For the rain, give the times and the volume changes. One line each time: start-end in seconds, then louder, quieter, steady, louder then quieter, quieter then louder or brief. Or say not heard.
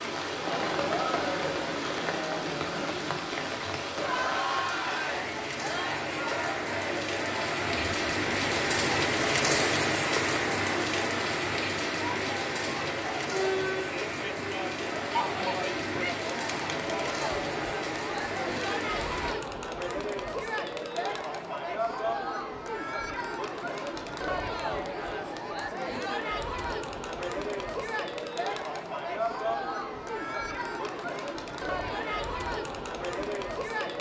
0.0-19.4 louder then quieter.